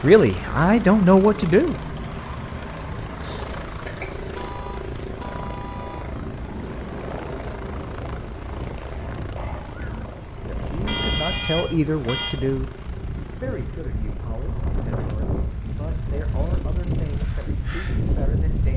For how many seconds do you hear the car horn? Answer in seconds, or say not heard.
3 s.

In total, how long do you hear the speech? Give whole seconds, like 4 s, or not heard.
9 s.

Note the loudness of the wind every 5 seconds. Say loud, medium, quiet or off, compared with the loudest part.
medium, medium, medium, loud.